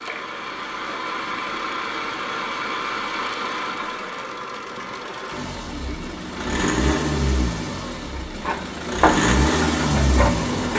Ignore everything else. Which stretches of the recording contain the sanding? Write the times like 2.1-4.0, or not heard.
8.4-10.7.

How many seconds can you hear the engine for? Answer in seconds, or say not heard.
11 s.